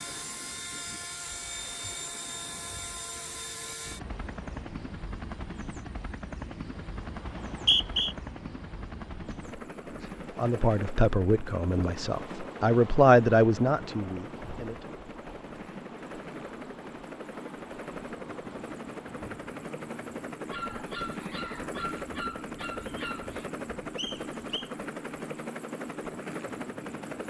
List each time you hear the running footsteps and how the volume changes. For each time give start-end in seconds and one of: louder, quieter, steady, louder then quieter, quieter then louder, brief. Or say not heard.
not heard.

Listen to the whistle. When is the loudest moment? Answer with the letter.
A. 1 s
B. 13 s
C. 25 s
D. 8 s
D.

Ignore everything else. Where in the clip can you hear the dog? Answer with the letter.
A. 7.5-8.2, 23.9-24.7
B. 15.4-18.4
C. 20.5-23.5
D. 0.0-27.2
C.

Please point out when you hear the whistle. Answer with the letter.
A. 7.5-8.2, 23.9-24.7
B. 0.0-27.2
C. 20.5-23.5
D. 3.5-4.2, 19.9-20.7
A.